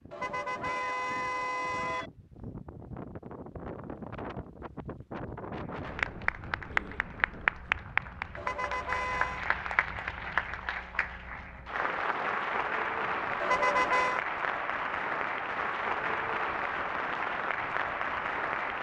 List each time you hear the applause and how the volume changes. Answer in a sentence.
You can hear the applause from 5.8 to 18.7 s, at a steady volume.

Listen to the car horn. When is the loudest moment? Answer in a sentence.
The volume of the car horn peaks at 14 seconds.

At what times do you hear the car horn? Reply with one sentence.
You can hear the car horn from 0.1 to 2.1 s, from 8.3 to 9.4 s and from 13.4 to 14.2 s.